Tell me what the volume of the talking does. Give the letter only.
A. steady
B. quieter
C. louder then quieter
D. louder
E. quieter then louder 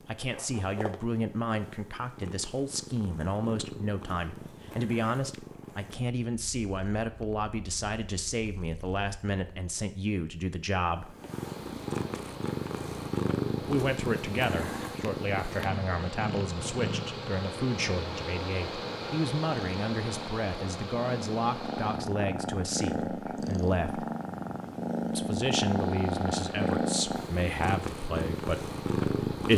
A.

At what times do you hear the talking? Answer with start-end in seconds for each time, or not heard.
0.1-11.2, 13.6-24.1, 25.1-29.5.